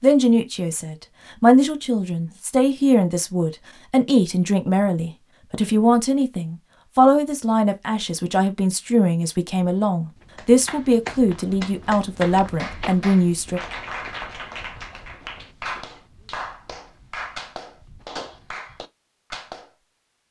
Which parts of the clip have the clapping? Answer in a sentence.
You can hear the clapping from 10.3 to 19.8 s.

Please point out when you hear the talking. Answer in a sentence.
You can hear the talking from 0.0 to 13.6 s.